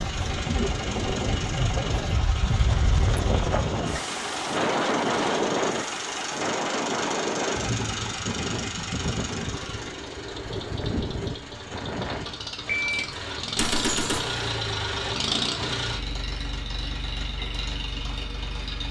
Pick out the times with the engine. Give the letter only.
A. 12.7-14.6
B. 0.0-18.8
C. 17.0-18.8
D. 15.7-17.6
B.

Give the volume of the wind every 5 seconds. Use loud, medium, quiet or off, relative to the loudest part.
loud, loud, medium, off.